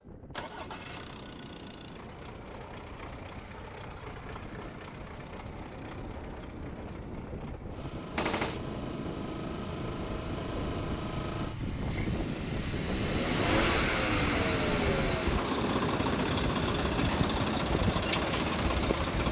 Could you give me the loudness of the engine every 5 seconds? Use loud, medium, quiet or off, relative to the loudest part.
quiet, quiet, loud, loud.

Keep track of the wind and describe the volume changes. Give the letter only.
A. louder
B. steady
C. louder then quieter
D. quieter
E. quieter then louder
A.